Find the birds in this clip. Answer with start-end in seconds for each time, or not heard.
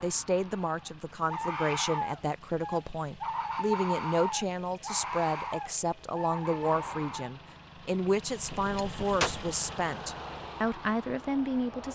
0.0-7.3.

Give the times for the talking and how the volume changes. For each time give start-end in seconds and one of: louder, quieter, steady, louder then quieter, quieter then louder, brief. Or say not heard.
0.0-11.9 steady.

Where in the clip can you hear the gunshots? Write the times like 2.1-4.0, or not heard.
8.4-9.3.